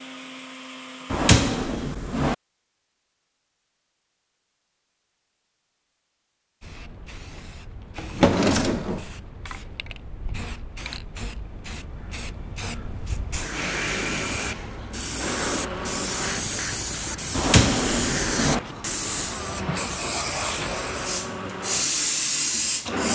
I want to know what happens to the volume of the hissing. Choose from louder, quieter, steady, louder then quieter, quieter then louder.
louder.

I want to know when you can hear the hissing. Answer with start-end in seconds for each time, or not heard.
6.6-23.1.